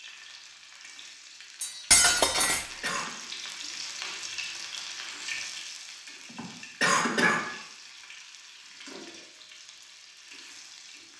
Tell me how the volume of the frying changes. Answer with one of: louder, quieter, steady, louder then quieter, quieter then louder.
louder then quieter.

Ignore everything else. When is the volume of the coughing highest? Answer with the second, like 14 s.
7 s.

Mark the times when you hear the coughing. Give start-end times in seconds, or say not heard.
2.3-3.1, 6.3-7.4.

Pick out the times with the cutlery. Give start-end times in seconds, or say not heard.
1.6-3.0.